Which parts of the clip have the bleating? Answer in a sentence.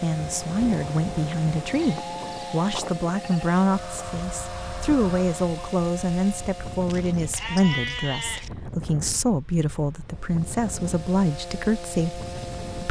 The bleating can be heard from 1.7 to 3.5 s and from 6.8 to 8.5 s.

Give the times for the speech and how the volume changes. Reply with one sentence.
The speech can be heard from 0.0 to 12.2 s, at a steady volume.